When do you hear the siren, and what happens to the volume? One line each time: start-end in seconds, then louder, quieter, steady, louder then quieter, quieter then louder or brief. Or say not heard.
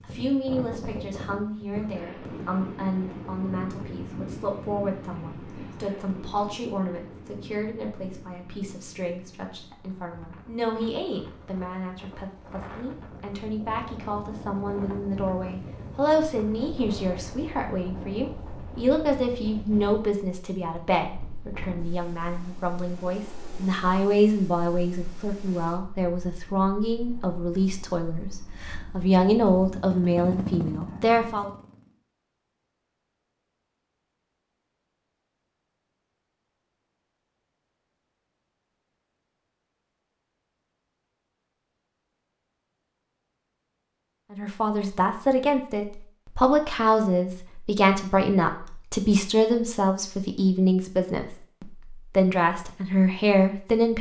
not heard.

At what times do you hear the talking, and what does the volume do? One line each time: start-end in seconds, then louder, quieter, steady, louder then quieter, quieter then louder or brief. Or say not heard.
0.0-31.5 louder
44.3-53.9 steady.